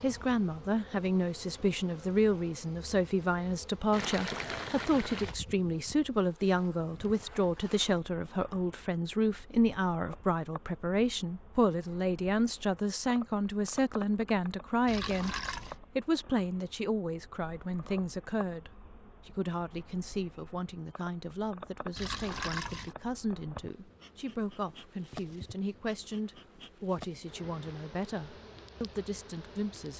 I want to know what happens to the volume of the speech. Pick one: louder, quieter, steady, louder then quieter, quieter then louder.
quieter.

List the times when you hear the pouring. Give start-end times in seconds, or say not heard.
3.9-5.3, 14.8-15.8, 21.9-22.9.